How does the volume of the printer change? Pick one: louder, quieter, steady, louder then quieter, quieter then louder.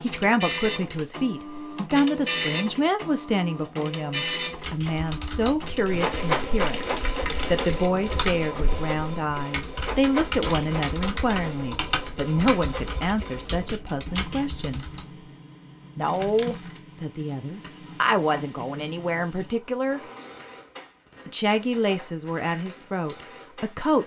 quieter.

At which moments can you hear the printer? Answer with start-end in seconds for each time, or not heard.
0.0-24.0.